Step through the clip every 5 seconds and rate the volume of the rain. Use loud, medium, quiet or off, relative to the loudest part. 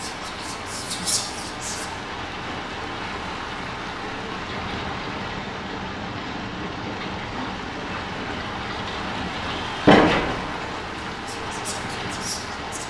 medium, loud, loud.